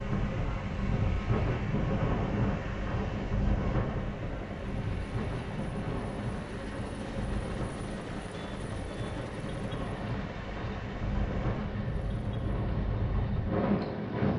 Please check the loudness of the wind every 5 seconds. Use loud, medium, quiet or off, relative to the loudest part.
loud, medium, loud.